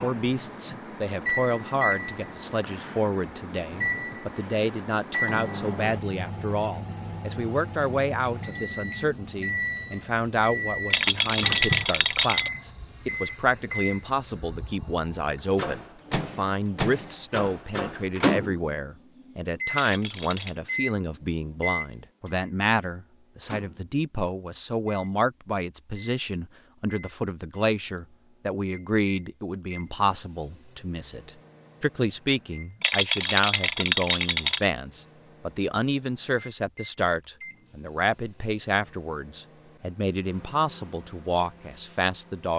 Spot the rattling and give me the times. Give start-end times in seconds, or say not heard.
10.9-12.5, 19.8-20.6, 32.8-34.6.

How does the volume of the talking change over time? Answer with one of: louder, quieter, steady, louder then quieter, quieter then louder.
steady.